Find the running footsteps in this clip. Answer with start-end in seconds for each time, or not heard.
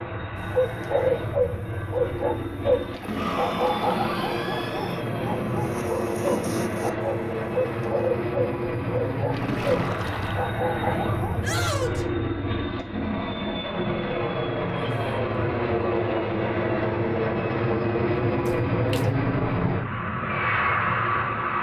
not heard.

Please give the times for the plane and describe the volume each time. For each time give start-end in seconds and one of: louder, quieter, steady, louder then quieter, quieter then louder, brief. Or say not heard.
0.0-21.5 louder.